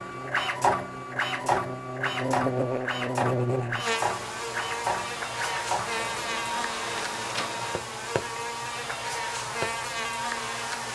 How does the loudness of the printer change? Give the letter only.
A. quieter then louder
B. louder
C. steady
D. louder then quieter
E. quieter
E.